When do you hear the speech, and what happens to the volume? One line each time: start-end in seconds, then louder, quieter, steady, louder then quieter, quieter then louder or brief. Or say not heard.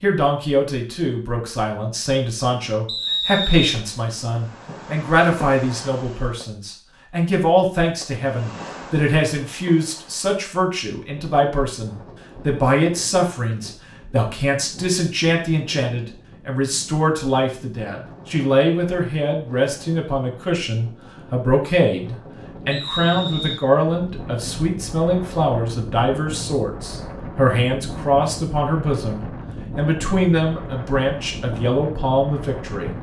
0.0-32.9 steady.